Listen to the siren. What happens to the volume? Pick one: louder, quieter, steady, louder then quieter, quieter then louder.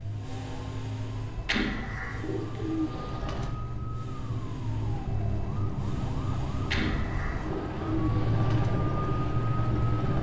louder.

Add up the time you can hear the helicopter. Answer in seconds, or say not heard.
10 s.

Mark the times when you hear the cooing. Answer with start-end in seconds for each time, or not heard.
1.4-3.5, 6.7-8.7.